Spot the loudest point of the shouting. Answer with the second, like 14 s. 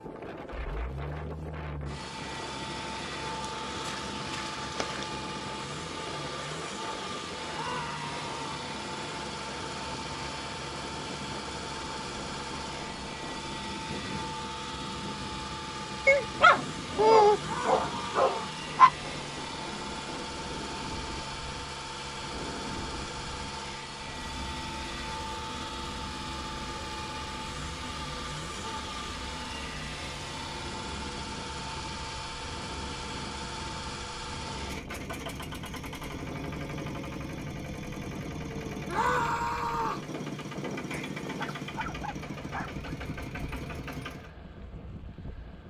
39 s.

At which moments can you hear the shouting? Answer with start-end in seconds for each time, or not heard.
7.5-8.7, 17.4-18.6, 38.9-40.0.